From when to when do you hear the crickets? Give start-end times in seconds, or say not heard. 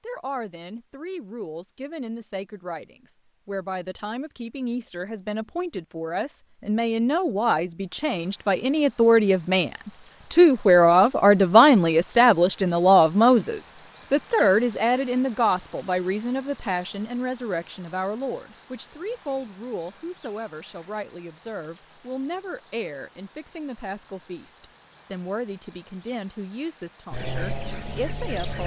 7.8-28.6.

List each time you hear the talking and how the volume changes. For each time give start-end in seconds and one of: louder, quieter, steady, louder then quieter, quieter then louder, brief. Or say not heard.
0.0-28.6 louder then quieter.